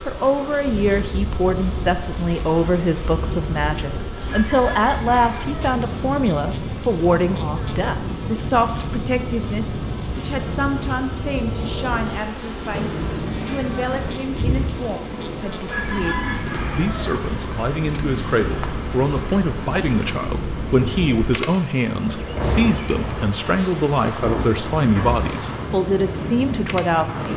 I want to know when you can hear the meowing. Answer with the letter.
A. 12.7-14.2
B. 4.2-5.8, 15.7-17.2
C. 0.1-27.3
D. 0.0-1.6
A.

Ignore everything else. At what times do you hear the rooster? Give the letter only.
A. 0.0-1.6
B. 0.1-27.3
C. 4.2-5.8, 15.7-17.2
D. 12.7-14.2
C.